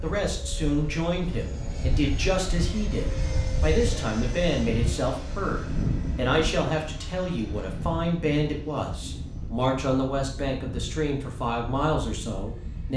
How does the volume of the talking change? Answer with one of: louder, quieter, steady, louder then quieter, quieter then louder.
steady.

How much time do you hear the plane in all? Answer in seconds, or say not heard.
13 s.